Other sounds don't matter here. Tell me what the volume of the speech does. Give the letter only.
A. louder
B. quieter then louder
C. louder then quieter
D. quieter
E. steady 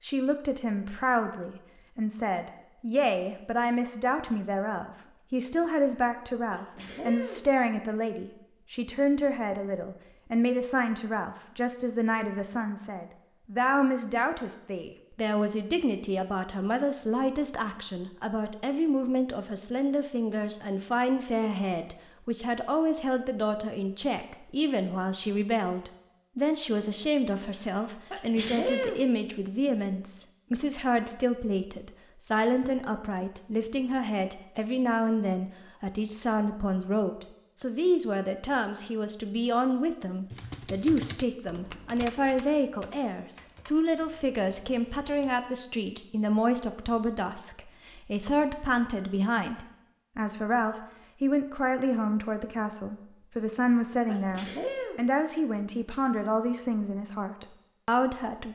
E.